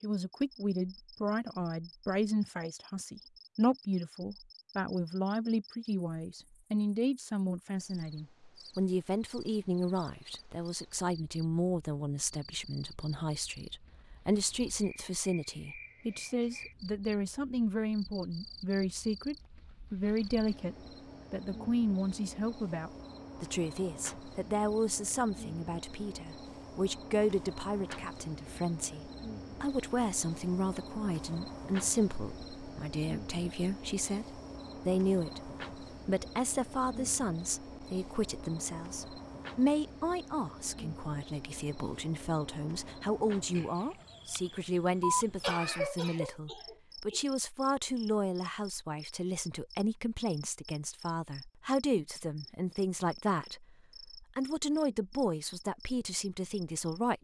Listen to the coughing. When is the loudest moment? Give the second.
45 s.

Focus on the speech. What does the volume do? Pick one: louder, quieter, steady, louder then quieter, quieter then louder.
steady.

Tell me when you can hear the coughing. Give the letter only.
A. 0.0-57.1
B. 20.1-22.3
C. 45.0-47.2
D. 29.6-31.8
C.